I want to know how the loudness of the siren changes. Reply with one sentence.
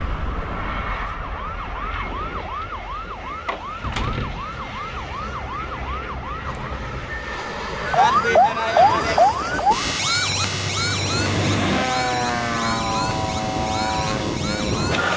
The loudness of the siren goes up, then down.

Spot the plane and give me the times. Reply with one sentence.
You can hear the plane from 0.0 to 15.1 s.